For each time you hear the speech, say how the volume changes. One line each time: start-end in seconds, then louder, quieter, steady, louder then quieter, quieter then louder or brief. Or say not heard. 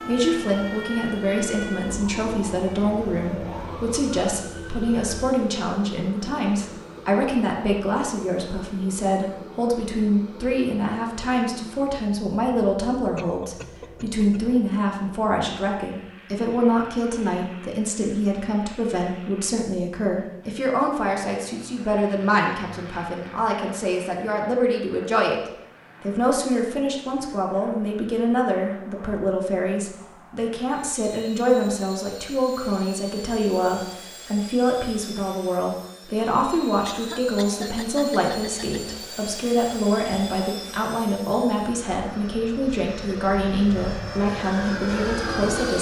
0.1-45.7 steady.